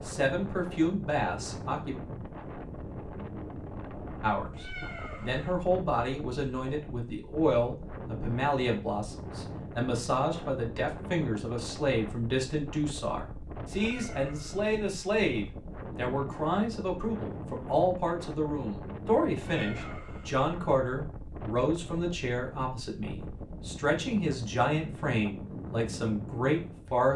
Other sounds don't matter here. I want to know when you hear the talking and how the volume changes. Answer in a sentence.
The talking can be heard briefly from 0.0 to 1.9 s; and from 4.2 to 27.1 s, at a steady volume.